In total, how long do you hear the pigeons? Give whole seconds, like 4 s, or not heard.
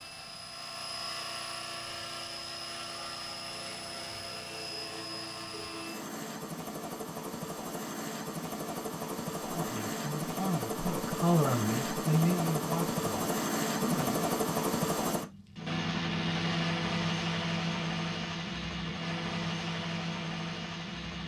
not heard.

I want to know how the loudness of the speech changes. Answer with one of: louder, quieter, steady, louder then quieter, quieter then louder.
louder then quieter.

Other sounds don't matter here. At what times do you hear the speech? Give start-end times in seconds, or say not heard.
9.4-14.2.